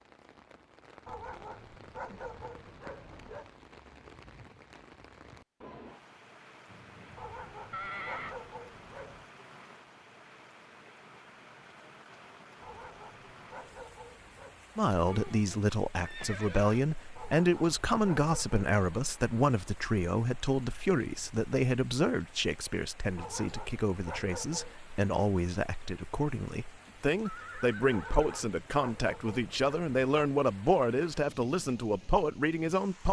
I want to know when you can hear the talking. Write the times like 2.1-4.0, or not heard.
14.8-33.0.